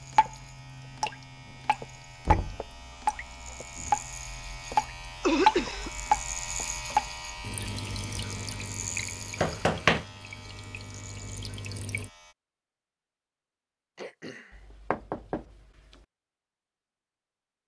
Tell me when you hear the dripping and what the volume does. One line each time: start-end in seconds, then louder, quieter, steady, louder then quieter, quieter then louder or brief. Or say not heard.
0.0-12.1 louder then quieter.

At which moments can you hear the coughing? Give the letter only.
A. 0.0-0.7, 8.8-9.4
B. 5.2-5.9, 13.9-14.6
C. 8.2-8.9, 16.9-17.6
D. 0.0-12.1
B.